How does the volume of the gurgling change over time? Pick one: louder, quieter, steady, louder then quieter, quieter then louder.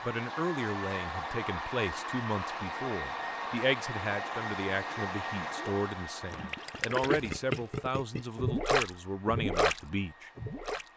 louder.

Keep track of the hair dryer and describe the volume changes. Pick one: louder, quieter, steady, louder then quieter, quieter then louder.
quieter.